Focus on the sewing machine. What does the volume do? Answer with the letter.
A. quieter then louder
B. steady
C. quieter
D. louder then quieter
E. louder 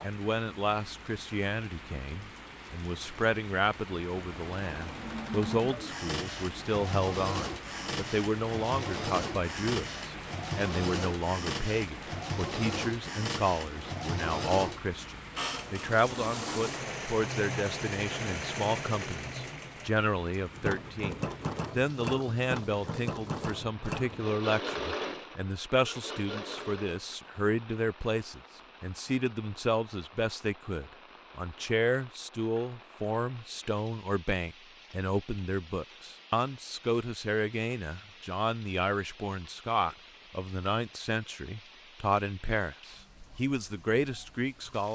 B.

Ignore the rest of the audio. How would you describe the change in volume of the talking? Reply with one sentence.
The loudness of the talking stays about the same.